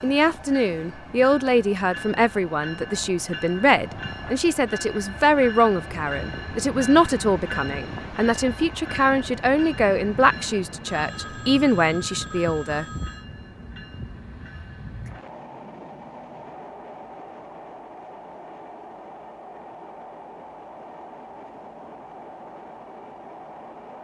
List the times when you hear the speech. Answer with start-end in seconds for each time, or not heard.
0.0-12.8.